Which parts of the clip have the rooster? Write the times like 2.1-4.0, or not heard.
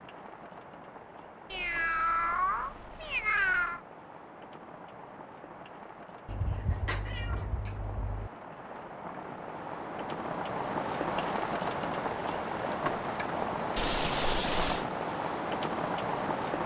not heard.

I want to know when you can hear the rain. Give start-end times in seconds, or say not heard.
0.0-16.6.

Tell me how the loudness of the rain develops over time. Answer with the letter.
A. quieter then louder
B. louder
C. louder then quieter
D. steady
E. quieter
B.